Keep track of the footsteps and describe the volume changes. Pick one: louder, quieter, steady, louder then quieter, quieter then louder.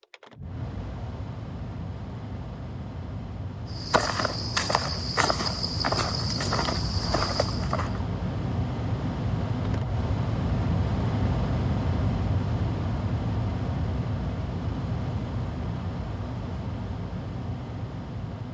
steady.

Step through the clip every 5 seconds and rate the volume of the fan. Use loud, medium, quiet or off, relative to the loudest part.
medium, loud, loud, medium.